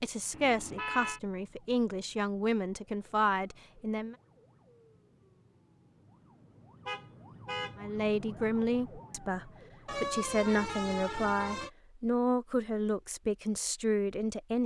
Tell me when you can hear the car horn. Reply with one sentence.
The car horn can be heard from 0.3 to 1.2 s, from 6.8 to 7.8 s and from 9.8 to 11.7 s.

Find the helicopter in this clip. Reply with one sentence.
The helicopter can't be heard in this clip.